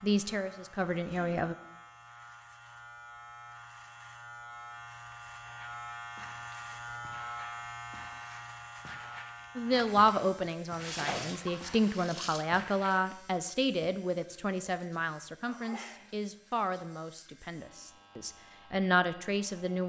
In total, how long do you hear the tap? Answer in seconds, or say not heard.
2 s.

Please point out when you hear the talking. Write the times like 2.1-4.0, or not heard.
0.0-1.6, 9.6-19.8.